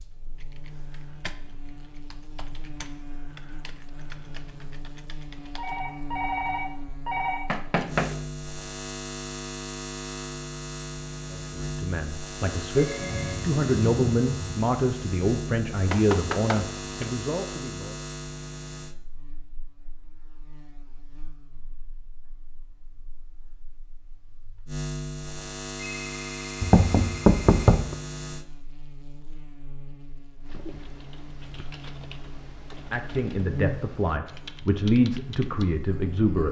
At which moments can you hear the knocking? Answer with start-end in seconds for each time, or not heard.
7.5-8.2, 15.8-17.1, 26.6-27.9.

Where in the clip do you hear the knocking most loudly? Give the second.
27 s.